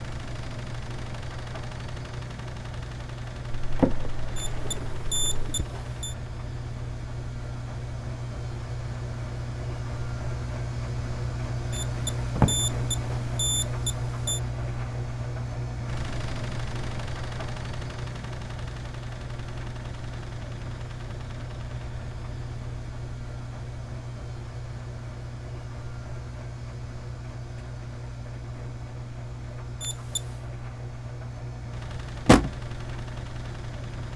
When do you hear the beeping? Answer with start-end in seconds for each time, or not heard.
4.3-6.2, 11.7-14.4, 29.8-30.3.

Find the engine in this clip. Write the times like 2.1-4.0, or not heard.
0.0-34.1.